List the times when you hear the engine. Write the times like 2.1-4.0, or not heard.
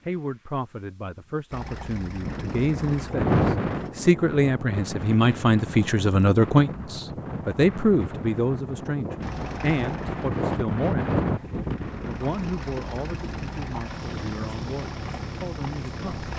1.5-3.9, 9.2-16.3.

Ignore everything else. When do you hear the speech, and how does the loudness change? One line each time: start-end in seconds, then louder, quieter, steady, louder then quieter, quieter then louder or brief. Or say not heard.
0.1-16.3 louder then quieter.